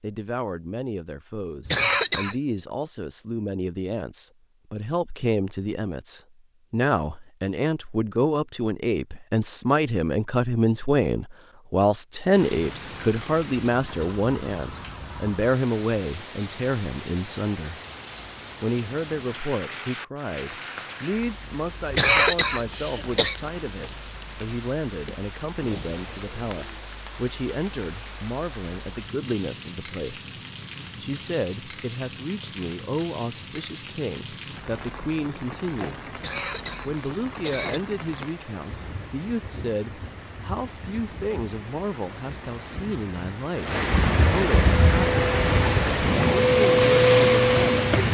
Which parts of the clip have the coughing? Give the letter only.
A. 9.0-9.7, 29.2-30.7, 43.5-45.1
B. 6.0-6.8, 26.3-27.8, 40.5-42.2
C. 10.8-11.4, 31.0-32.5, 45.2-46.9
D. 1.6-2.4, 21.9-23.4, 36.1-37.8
D.